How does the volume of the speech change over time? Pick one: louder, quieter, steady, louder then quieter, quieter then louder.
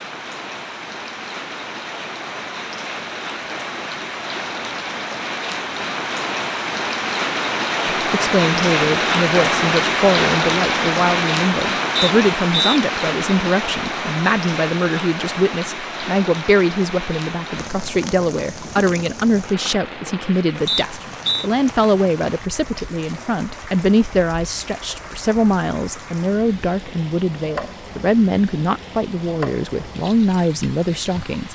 steady.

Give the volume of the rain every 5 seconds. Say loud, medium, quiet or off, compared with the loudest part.
medium, loud, loud, medium, quiet, quiet, quiet.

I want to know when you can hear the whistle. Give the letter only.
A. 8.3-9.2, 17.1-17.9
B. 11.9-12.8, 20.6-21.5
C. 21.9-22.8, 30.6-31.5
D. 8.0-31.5
B.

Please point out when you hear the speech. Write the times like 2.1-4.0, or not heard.
8.0-31.5.